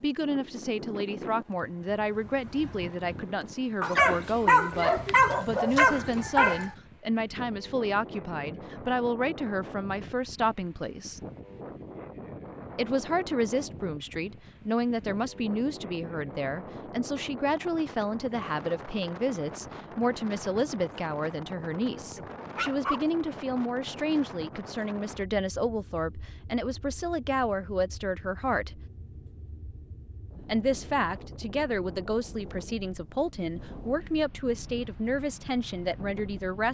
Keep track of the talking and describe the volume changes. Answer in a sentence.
The loudness of the talking stays about the same.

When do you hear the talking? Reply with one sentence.
The talking can be heard from 0.0 to 11.2 s, from 12.8 to 28.8 s and from 30.4 to 36.7 s.